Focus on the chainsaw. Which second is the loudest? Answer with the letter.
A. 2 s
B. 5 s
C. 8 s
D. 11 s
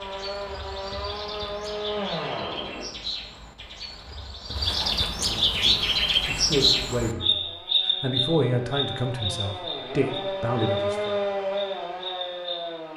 D.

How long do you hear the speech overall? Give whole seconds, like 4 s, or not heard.
6 s.